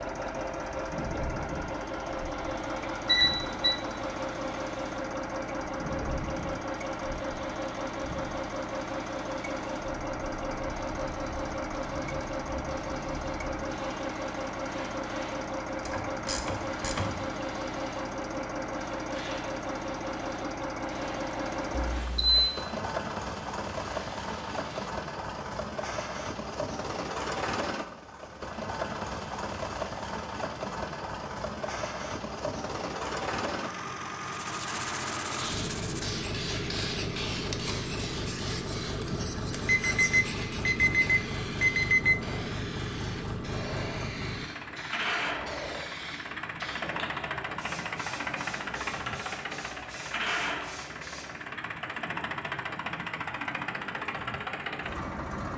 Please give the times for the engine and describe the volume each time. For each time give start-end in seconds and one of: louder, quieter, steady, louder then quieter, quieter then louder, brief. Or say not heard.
0.0-55.5 steady.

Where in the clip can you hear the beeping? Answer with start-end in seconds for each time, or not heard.
3.0-3.8, 21.7-22.6, 39.6-42.2.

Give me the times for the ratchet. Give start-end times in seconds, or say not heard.
15.8-17.2.